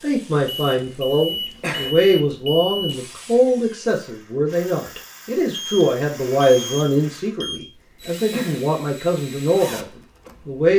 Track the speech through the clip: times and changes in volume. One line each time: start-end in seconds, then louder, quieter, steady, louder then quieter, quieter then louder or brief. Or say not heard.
0.0-10.7 steady.